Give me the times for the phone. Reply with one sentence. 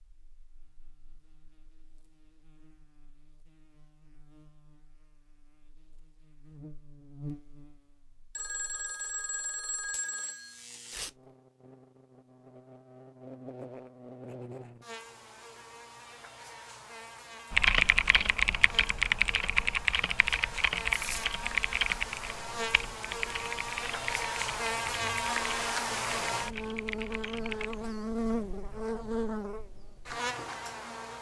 The phone can be heard from 8.3 to 10.6 s.